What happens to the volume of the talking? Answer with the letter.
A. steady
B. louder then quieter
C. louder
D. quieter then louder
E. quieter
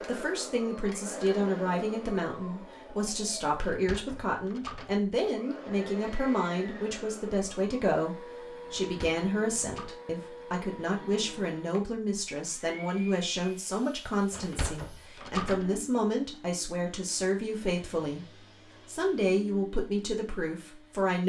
A.